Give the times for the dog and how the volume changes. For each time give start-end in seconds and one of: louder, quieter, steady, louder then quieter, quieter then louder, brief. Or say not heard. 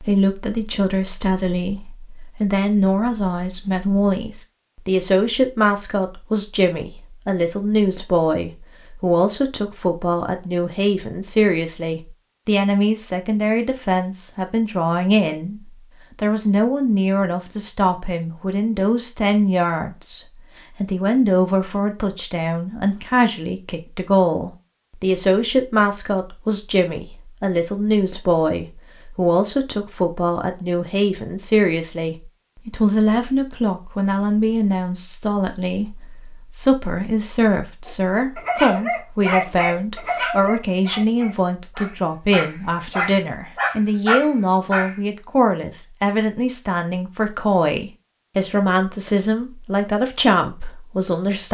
37.9-45.0 quieter then louder.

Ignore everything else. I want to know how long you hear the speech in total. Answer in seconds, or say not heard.
51 s.